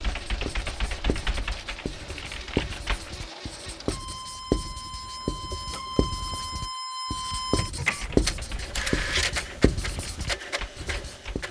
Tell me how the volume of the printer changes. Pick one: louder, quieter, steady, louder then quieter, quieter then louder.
louder.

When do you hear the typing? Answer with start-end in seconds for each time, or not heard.
0.0-3.3, 7.9-11.4.